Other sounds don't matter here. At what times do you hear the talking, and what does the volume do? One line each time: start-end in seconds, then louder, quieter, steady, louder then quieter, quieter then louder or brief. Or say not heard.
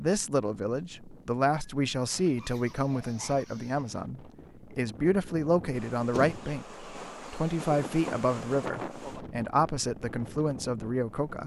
0.0-11.4 steady.